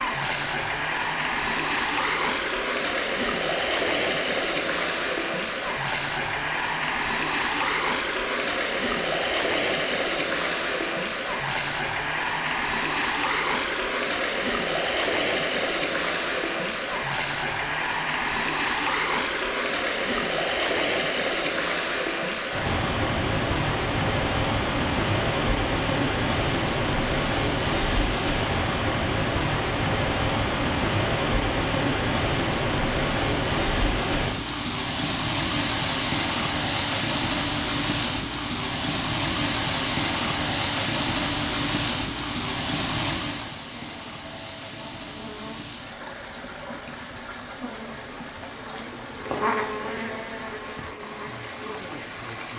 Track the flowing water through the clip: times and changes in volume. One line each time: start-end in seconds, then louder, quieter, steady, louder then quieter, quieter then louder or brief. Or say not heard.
0.0-52.5 quieter.